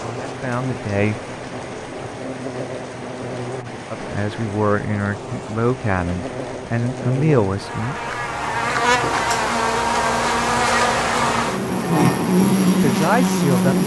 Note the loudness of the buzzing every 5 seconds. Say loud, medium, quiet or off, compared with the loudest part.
quiet, medium, loud.